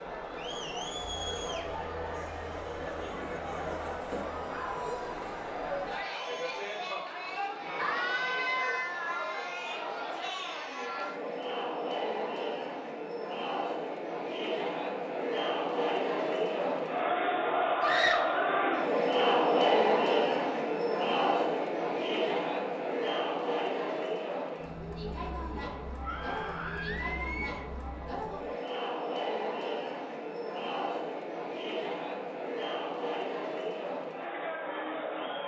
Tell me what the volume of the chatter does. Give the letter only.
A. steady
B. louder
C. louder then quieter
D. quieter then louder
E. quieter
C.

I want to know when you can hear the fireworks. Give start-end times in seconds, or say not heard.
not heard.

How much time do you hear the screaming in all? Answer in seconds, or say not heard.
3 s.